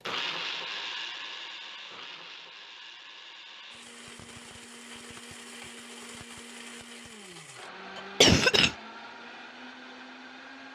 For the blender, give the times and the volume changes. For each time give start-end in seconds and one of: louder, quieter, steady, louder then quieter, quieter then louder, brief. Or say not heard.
0.0-10.7 quieter.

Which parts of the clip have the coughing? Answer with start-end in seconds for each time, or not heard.
8.0-8.8.